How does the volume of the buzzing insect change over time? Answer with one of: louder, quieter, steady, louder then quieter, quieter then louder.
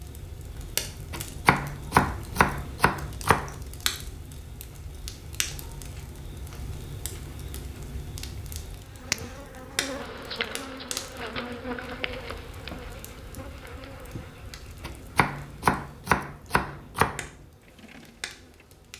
quieter.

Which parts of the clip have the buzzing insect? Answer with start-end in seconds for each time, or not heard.
8.7-18.9.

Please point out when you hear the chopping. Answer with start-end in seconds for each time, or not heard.
1.1-3.5, 14.8-17.2.